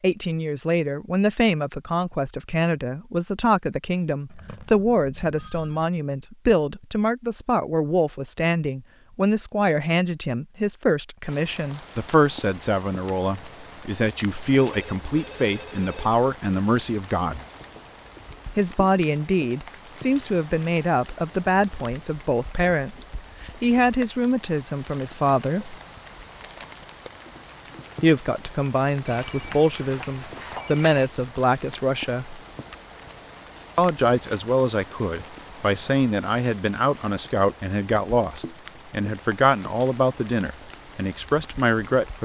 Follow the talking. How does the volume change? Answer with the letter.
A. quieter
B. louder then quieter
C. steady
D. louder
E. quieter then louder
C.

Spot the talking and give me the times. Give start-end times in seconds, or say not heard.
0.0-17.4, 18.6-25.8, 28.0-32.4, 33.8-42.2.